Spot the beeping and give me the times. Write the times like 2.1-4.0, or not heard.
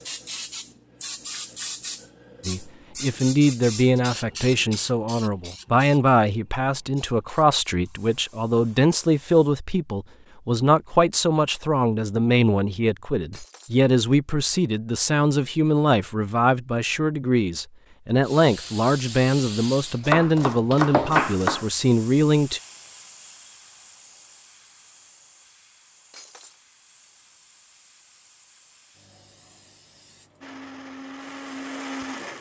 not heard.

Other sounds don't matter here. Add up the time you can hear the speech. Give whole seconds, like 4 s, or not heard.
20 s.